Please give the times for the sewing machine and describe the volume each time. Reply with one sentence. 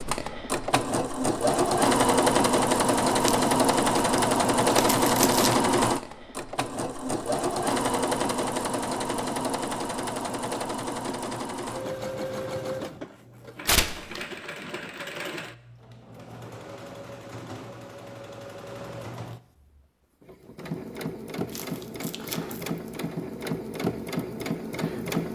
You can hear the sewing machine from 0.0 to 25.3 s, getting quieter then louder.